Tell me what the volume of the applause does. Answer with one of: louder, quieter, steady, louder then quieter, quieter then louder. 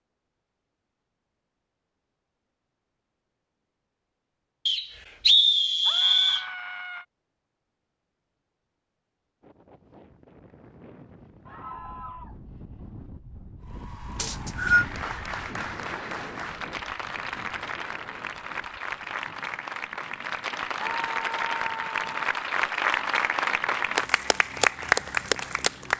louder.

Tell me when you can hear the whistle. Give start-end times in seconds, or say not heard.
4.7-6.5, 14.2-14.8.